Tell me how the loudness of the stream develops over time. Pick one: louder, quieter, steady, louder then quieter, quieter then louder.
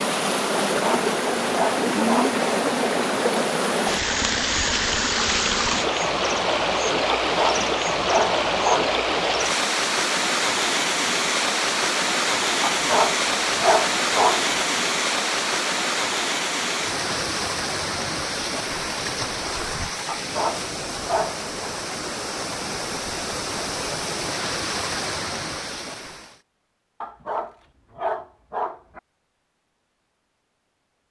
quieter.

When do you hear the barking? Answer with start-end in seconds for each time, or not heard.
0.8-2.4, 7.2-8.9, 12.7-14.4, 20.1-21.7, 27.0-29.0.